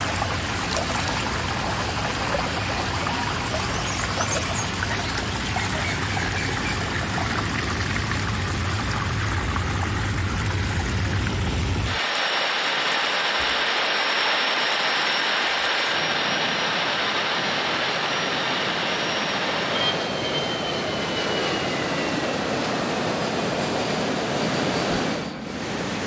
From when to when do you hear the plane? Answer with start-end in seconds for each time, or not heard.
0.0-26.0.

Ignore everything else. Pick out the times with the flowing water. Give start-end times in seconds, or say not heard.
0.0-26.0.